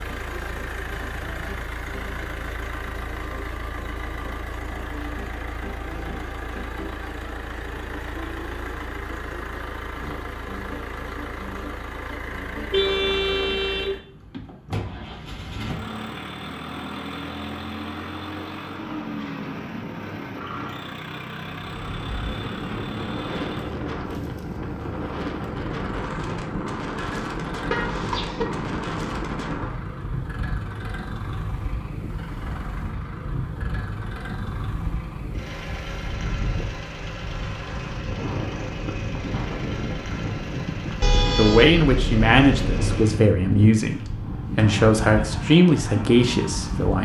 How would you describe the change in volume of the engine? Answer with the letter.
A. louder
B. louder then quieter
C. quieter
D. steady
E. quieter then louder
D.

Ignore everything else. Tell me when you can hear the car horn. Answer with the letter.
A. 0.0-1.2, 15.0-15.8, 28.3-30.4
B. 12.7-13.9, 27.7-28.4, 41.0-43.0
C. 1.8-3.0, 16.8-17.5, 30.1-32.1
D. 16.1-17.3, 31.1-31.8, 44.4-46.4
B.